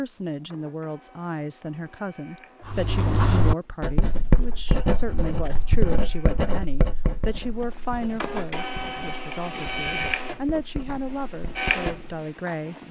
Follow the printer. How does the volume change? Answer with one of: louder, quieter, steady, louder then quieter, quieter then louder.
louder.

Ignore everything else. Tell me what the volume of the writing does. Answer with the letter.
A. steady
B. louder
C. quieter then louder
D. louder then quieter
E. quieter
E.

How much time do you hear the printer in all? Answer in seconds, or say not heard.
13 s.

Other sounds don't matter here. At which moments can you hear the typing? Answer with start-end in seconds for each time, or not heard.
not heard.